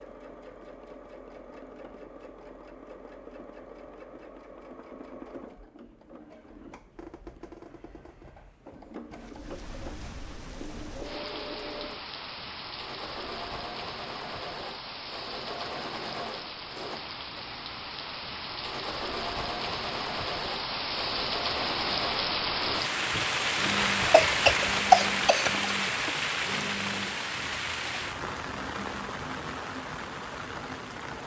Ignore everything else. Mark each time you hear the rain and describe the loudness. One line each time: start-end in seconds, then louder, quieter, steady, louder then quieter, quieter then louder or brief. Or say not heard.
9.2-31.2 louder then quieter.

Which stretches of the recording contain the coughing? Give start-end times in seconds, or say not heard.
24.1-25.6.